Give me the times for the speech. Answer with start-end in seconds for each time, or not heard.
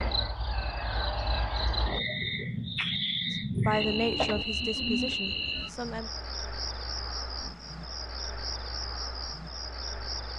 3.3-6.1.